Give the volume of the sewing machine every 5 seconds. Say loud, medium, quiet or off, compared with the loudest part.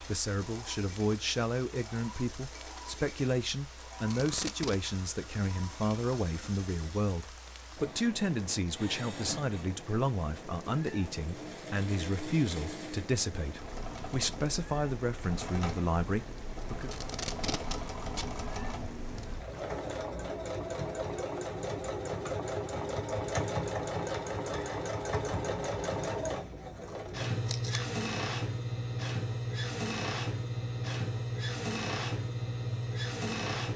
quiet, quiet, medium, medium, loud, loud, loud.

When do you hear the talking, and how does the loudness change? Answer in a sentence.
The talking can be heard from 0.0 to 16.9 s, at a steady volume.